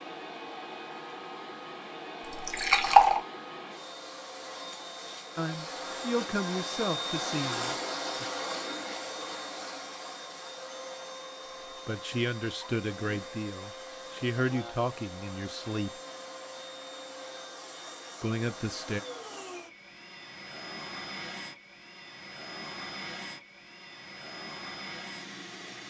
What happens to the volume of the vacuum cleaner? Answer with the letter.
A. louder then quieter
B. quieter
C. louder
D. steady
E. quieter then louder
A.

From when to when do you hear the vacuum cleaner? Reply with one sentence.
You can hear the vacuum cleaner from 0.0 to 25.8 s.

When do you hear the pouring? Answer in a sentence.
The pouring can be heard from 2.2 to 3.2 s.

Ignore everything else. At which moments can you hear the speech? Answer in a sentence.
The speech can be heard from 5.3 to 8.2 s, from 11.7 to 16.0 s and from 18.2 to 19.0 s.